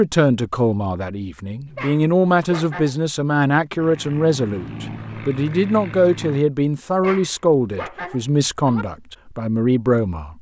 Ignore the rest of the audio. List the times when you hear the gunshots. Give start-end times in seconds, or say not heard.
not heard.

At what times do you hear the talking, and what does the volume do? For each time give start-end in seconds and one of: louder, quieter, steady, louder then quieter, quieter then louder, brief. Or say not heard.
0.0-10.3 steady.